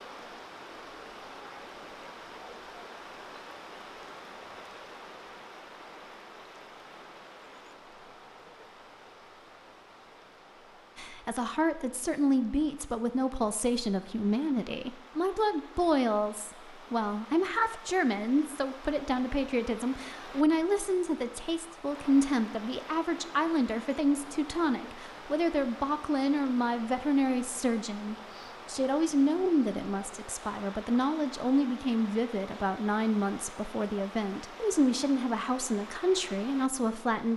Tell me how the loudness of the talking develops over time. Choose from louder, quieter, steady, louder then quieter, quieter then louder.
steady.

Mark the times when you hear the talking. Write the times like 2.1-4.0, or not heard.
10.9-37.3.